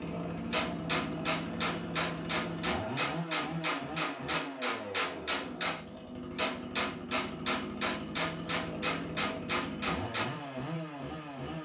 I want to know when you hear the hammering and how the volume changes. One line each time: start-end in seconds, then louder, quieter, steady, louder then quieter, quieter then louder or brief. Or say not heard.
0.5-10.2 steady.